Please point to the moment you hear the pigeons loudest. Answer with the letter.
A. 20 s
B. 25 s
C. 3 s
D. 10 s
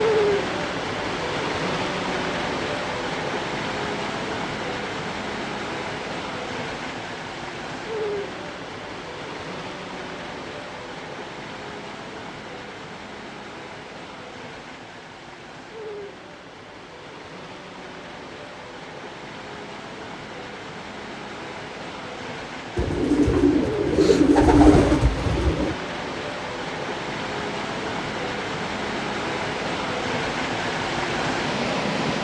B.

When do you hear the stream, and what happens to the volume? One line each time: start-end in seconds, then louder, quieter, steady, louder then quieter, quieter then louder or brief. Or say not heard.
0.0-32.2 quieter then louder.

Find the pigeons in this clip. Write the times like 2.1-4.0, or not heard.
22.8-25.8.